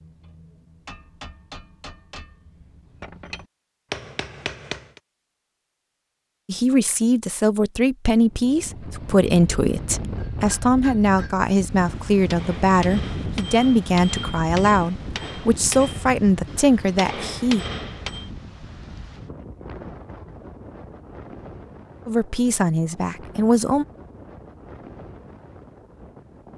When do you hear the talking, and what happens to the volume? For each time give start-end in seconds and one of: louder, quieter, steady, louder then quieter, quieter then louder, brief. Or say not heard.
6.5-17.6 steady
22.1-23.9 brief.